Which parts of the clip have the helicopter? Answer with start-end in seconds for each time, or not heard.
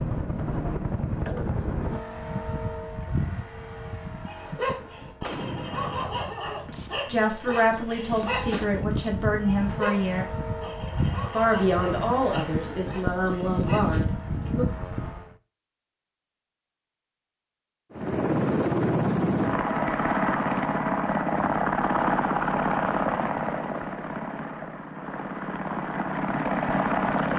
0.0-15.3, 17.9-27.3.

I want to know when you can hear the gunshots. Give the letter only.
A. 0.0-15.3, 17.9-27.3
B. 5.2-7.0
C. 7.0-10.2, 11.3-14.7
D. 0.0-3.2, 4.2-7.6
B.